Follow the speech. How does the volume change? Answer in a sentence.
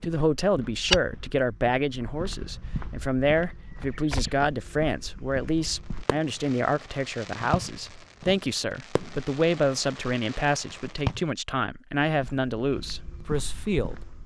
The volume of the speech stays about the same.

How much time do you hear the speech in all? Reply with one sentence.
The speech can be heard for 14 seconds in total.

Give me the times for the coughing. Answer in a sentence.
The coughing can't be heard in this clip.